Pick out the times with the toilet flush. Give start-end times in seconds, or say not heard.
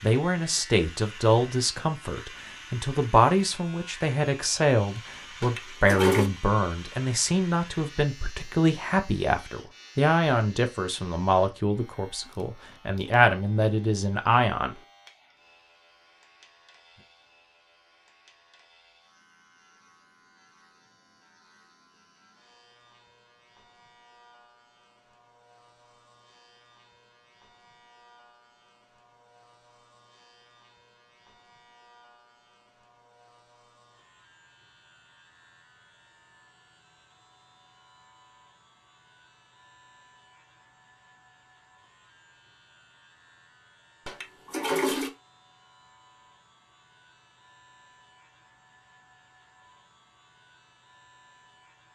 5.4-6.3, 44.0-45.1.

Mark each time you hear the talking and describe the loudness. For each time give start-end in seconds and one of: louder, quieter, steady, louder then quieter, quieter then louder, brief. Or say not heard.
0.0-14.8 steady.